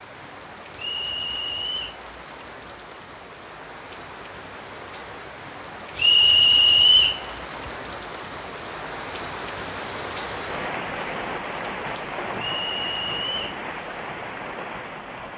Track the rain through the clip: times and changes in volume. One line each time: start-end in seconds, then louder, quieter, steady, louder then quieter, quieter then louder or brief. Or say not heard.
0.0-15.3 louder.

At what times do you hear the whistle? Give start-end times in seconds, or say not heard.
0.8-1.9, 6.0-7.2, 12.5-13.4.